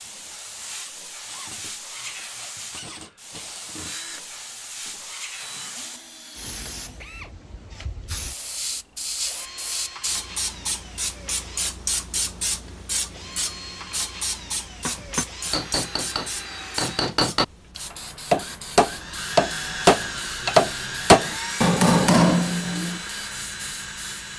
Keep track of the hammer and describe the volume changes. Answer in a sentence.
The volume of the hammer goes up.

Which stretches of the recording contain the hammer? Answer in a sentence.
The hammer can be heard from 14.8 to 22.9 s.